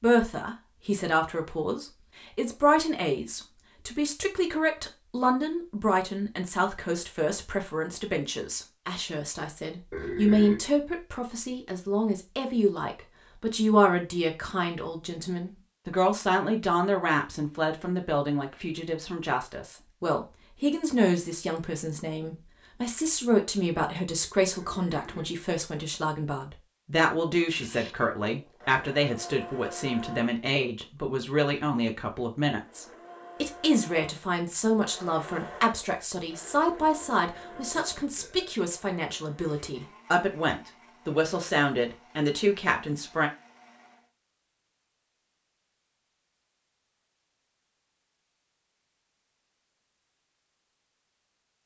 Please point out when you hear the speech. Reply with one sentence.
You can hear the speech from 0.0 to 43.3 s.